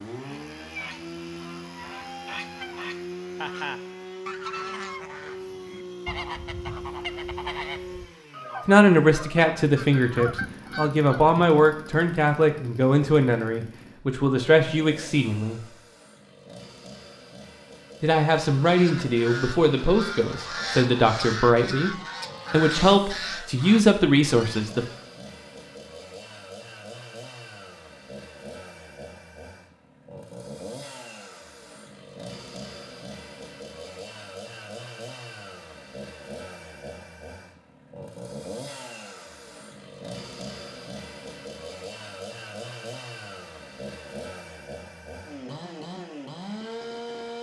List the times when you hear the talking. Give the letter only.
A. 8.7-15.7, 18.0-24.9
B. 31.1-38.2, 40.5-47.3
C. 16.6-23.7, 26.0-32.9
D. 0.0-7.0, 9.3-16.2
A.